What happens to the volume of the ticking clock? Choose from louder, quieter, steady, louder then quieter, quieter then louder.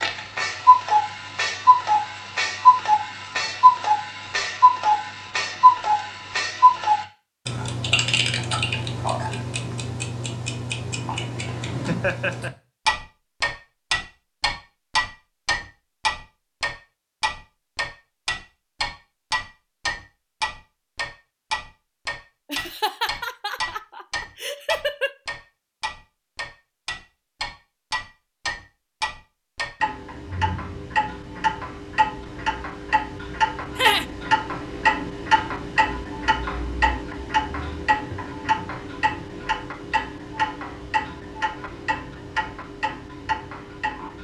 quieter.